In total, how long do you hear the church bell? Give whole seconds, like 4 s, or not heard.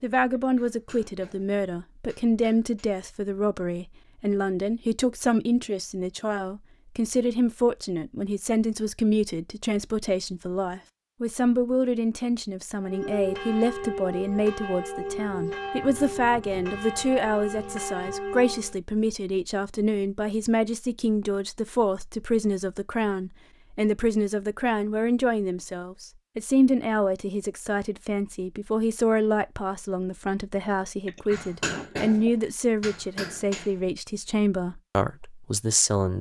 6 s.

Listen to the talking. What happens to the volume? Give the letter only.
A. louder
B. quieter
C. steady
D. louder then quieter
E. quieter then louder
C.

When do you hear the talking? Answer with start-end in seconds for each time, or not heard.
0.0-36.1.